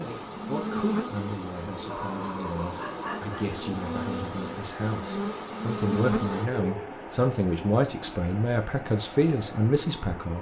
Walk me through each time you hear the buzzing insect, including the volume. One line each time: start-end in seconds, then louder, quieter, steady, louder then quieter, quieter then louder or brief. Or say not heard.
0.0-6.5 quieter then louder.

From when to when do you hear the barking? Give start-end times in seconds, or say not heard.
1.9-3.5, 6.2-7.0.